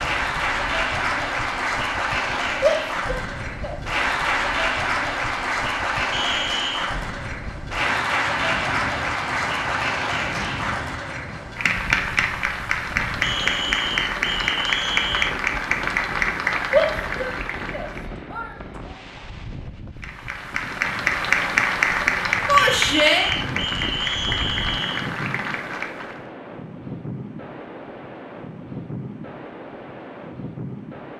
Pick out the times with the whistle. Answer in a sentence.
The whistle can be heard from 6.1 to 7.0 s, from 13.2 to 15.3 s and from 22.6 to 25.1 s.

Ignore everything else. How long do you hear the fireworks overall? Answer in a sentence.
You can't hear the fireworks here.